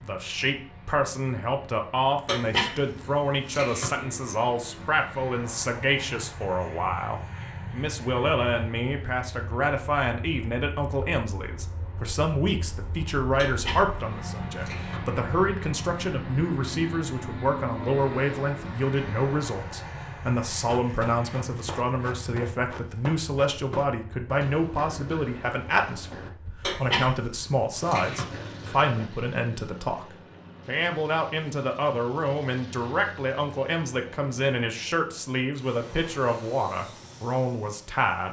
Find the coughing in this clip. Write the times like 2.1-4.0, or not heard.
2.2-3.9, 13.3-15.0, 26.6-28.2.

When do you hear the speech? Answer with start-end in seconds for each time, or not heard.
0.0-38.2.